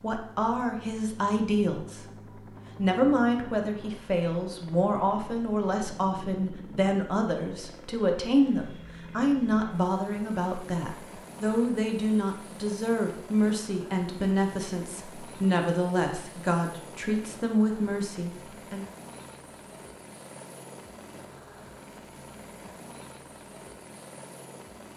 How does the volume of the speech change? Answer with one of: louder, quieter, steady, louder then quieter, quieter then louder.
steady.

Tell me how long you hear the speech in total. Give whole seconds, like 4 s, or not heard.
19 s.